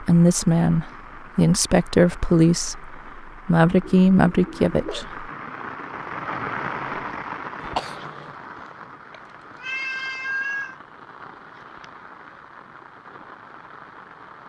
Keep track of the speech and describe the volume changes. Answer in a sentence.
The volume of the speech stays about the same.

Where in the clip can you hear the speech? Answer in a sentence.
You can hear the speech from 0.0 to 5.2 s.